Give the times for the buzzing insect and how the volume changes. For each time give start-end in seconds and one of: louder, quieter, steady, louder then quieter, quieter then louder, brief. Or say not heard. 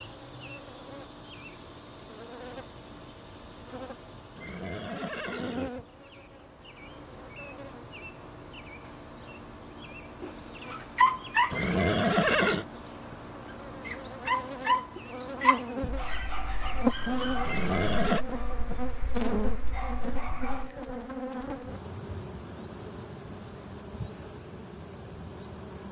0.0-25.8 louder then quieter.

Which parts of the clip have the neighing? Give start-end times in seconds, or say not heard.
4.3-5.7, 11.5-12.7, 17.4-18.2.